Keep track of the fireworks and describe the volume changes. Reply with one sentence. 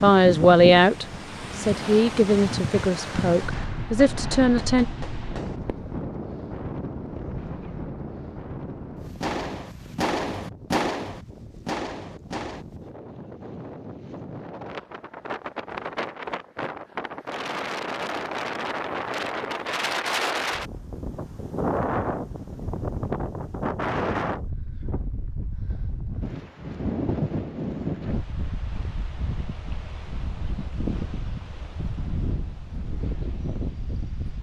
The loudness of the fireworks goes up.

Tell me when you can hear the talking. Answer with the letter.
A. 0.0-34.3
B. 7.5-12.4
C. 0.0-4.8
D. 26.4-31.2
C.